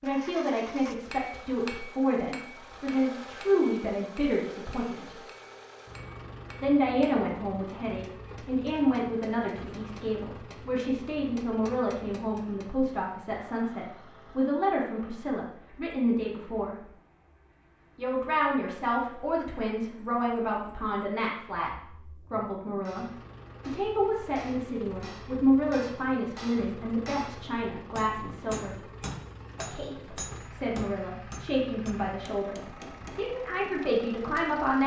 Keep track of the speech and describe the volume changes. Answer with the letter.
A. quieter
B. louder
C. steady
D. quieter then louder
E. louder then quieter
C.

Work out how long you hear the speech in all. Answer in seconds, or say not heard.
31 s.